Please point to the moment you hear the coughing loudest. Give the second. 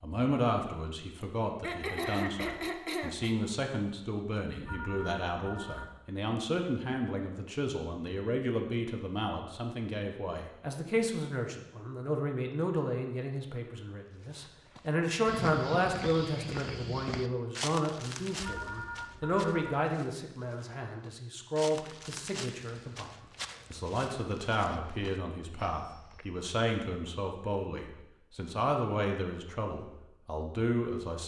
2 s.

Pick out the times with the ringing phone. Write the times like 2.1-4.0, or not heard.
4.6-6.0, 18.4-19.7.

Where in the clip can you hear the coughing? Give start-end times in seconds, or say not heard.
1.2-3.4.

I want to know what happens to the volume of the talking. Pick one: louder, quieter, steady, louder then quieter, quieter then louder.
steady.